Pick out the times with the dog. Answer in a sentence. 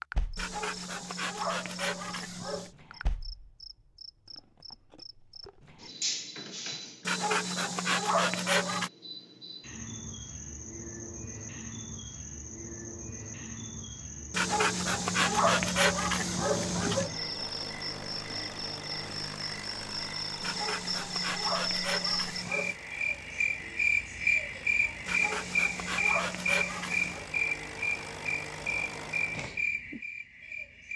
You can hear the dog from 0.3 to 2.7 s, from 7.0 to 8.9 s, from 14.3 to 17.1 s, from 20.4 to 22.8 s and from 25.1 to 27.2 s.